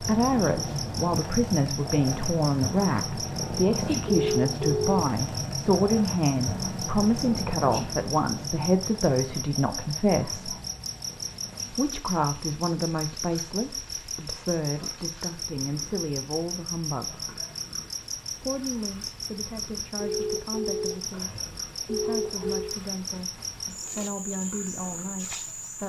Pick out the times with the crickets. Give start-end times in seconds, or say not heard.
0.0-25.8.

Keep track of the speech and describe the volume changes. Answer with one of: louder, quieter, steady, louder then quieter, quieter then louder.
quieter.